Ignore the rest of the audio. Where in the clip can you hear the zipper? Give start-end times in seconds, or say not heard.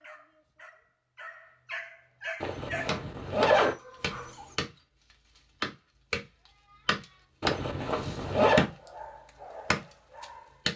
2.4-3.8, 7.4-8.7.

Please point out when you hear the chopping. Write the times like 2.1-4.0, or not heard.
2.9-4.7, 5.3-6.2, 6.8-8.8, 9.7-10.7.